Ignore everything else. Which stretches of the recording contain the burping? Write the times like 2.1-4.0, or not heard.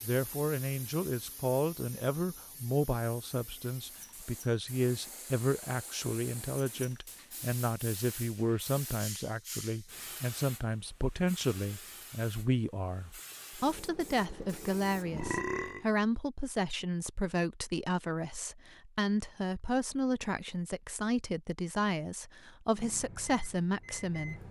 15.1-15.9.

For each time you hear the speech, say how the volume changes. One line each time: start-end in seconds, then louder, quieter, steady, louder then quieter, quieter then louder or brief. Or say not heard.
0.0-24.4 steady.